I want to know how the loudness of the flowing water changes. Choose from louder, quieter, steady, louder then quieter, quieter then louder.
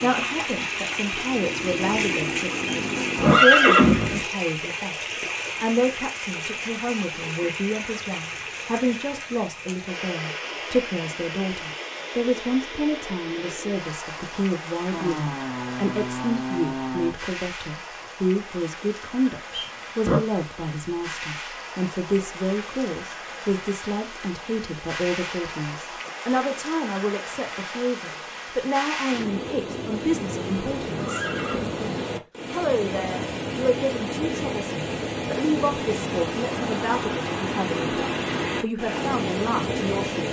quieter then louder.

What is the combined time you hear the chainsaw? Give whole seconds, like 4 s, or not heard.
6 s.